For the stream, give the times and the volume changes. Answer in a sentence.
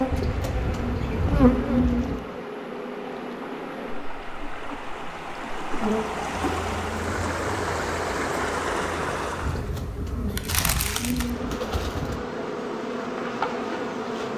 The stream can be heard from 0.0 to 9.7 s, getting louder.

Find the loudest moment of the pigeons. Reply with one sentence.
The volume of the pigeons peaks at 2 seconds.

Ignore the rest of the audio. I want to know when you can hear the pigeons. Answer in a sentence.
You can hear the pigeons from 0.1 to 2.2 s and from 9.4 to 12.2 s.